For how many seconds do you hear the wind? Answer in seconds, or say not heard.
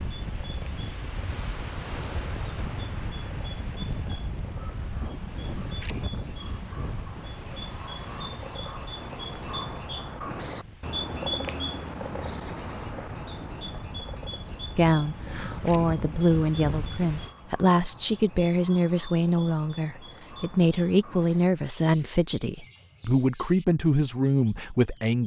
17 s.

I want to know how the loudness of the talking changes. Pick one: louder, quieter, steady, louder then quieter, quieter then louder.
steady.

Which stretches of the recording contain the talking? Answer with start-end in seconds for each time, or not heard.
14.8-25.2.